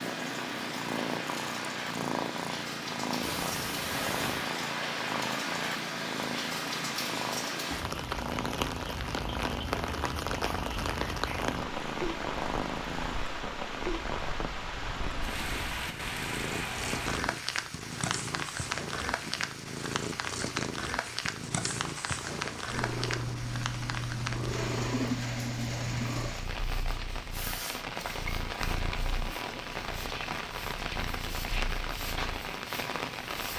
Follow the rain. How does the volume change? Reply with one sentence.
The loudness of the rain stays about the same.